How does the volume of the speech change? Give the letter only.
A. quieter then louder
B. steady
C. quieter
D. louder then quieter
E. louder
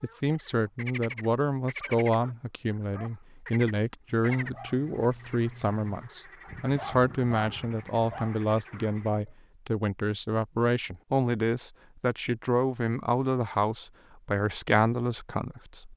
B.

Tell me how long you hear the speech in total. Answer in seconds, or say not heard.
16 s.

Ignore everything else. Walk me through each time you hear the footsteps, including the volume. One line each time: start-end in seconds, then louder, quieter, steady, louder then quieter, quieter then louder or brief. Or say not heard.
not heard.